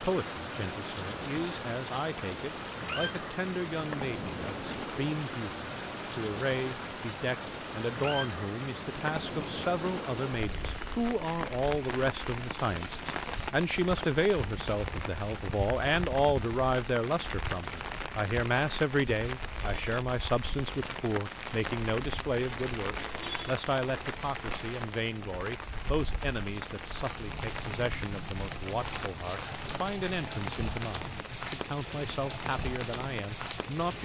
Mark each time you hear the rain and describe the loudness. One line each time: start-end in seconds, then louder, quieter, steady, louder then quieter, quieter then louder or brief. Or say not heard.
0.0-33.9 steady.